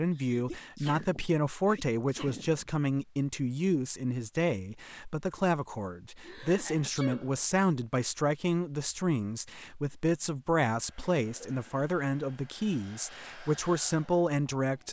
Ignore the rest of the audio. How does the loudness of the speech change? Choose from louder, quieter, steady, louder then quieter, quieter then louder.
steady.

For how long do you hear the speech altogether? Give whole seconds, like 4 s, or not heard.
15 s.